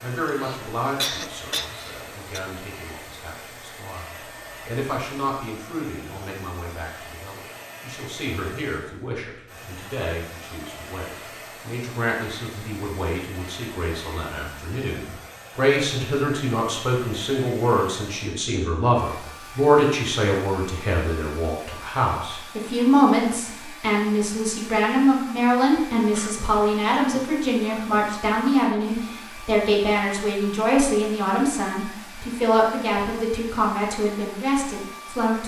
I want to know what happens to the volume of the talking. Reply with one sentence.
The loudness of the talking goes up.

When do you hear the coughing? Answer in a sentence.
The coughing can be heard from 0.2 to 2.4 s and from 26.1 to 28.1 s.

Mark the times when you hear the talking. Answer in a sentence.
The talking can be heard from 0.0 to 35.4 s.